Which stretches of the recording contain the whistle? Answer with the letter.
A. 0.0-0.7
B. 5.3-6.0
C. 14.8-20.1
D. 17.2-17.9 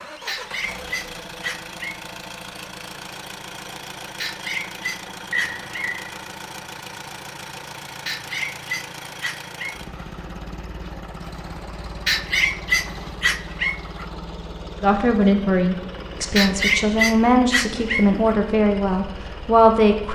B.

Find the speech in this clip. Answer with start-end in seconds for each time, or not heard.
14.8-20.1.